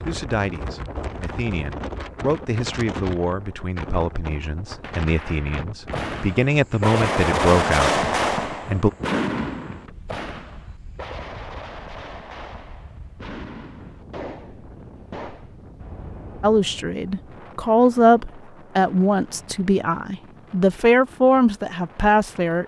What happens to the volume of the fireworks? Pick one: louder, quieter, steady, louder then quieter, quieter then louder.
quieter.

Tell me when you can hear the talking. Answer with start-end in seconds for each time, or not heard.
0.0-8.9, 16.4-22.6.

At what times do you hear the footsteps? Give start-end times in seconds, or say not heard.
not heard.